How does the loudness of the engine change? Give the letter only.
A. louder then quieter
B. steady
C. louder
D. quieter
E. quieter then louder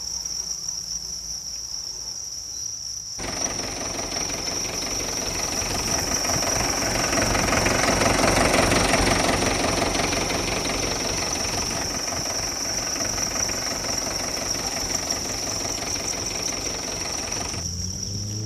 A.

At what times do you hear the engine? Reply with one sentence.
You can hear the engine from 3.1 to 18.4 s.